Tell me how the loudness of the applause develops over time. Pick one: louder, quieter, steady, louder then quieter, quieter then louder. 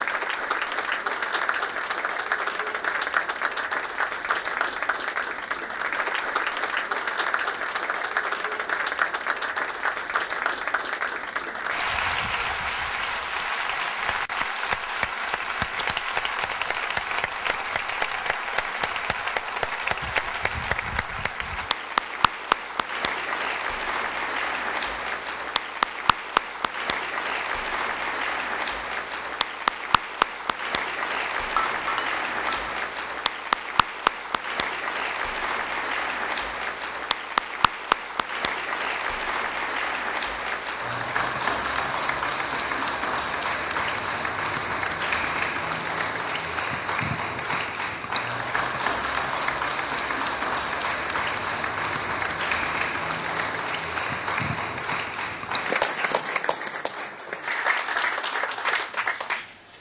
steady.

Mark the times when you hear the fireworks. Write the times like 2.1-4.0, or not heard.
not heard.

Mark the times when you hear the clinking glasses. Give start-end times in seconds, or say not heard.
31.6-32.8.